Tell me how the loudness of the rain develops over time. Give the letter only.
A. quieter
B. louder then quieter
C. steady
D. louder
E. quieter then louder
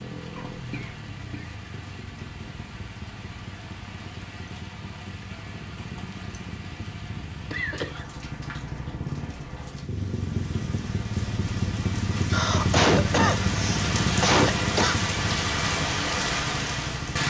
D.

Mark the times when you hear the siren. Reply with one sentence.
You can't hear the siren here.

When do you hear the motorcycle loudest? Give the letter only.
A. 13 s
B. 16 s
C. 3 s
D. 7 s
A.